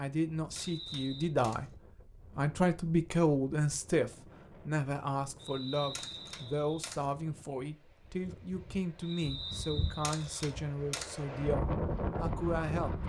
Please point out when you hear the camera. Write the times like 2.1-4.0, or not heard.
0.6-1.7, 6.0-7.1, 10.0-11.2.